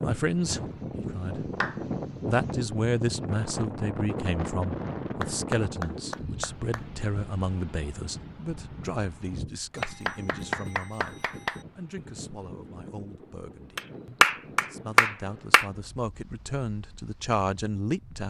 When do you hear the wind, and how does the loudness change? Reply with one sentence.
The wind can be heard from 0.0 to 18.2 s, getting quieter.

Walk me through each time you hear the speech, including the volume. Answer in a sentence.
The speech can be heard briefly from 0.0 to 1.5 s; and from 2.2 to 18.2 s, getting quieter then louder.